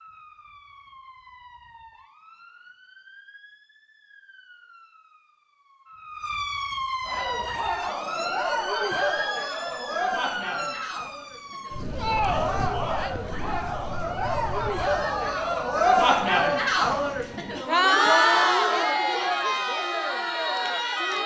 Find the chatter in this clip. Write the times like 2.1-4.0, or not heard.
7.0-21.2.